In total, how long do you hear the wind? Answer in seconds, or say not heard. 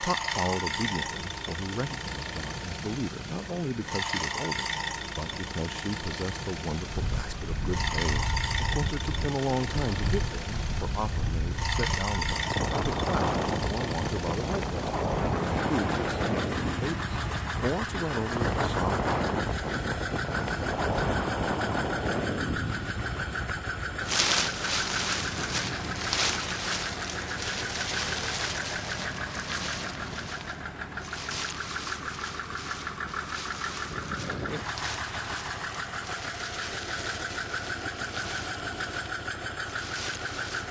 34 s.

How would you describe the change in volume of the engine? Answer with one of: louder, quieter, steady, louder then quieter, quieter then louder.
steady.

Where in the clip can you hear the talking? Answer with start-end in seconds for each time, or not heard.
0.0-18.9.